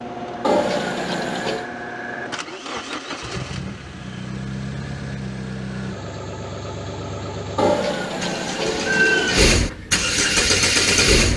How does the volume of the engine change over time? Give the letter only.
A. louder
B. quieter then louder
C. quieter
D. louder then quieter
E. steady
A.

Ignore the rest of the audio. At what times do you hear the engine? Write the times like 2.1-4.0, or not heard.
0.0-11.3.